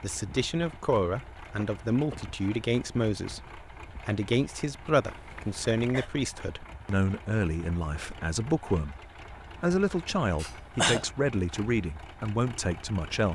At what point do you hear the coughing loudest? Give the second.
11 s.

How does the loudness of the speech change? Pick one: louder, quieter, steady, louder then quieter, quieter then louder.
steady.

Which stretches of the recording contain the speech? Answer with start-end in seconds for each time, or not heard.
0.0-8.9, 9.6-13.3.